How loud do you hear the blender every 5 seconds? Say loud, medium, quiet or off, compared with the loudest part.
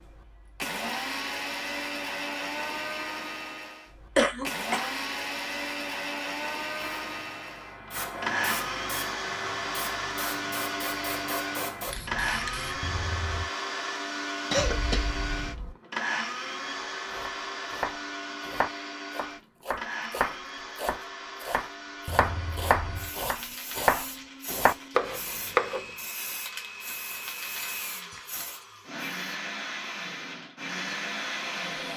loud, loud, loud, loud, medium, medium, loud.